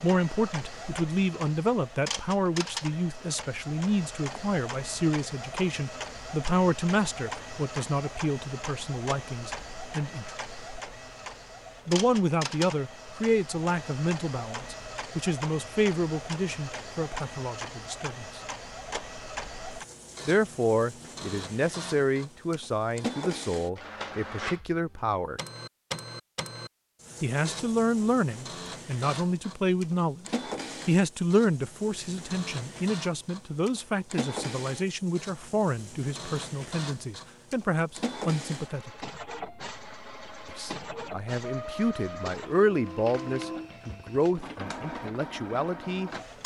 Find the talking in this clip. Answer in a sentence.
You can hear the talking from 0.0 to 10.3 s, from 11.8 to 18.4 s, from 20.2 to 25.4 s, from 27.2 to 30.2 s, from 30.9 to 38.9 s and from 40.5 to 46.4 s.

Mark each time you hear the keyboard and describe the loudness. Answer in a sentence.
You can't hear the keyboard here.